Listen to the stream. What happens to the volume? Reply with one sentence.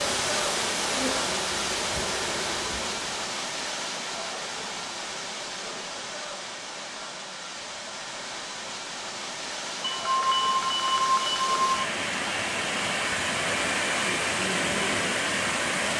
The volume of the stream goes down, then up.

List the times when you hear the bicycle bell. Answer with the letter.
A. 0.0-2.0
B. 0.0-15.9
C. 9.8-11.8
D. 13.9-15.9
C.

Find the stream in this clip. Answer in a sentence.
The stream can be heard from 0.0 to 15.9 s.